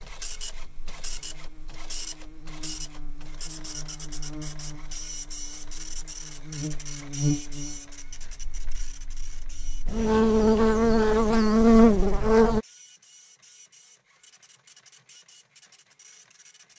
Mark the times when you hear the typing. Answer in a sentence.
The typing can't be heard in this clip.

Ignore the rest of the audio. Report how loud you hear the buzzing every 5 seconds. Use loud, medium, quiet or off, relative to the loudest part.
quiet, quiet, loud, off.